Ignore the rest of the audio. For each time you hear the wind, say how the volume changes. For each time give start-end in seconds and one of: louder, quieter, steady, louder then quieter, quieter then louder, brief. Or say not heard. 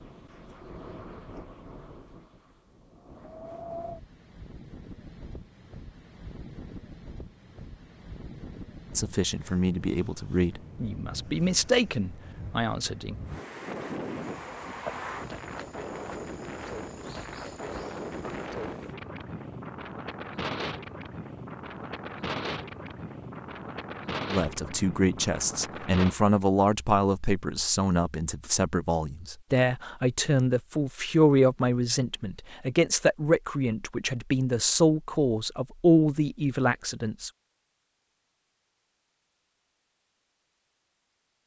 0.0-26.1 louder.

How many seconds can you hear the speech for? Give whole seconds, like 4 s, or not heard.
17 s.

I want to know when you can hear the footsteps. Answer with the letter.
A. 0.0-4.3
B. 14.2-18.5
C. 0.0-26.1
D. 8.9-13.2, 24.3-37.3
B.